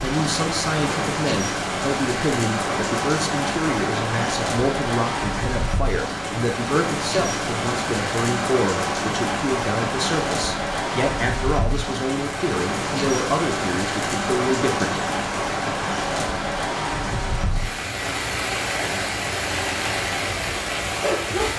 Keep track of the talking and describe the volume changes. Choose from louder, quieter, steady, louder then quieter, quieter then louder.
steady.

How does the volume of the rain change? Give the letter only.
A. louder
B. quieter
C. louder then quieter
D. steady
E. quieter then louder
D.